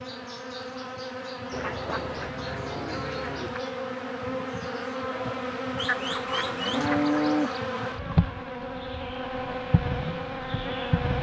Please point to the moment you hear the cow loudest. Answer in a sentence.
The loudest moment of the cow is at 7 seconds.